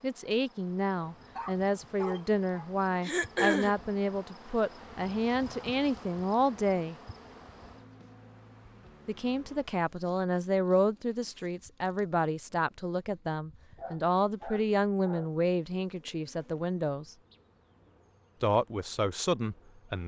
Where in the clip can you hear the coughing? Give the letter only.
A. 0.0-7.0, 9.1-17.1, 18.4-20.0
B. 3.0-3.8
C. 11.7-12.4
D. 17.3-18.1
B.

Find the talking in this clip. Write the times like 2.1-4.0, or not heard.
0.0-7.0, 9.1-17.1, 18.4-20.0.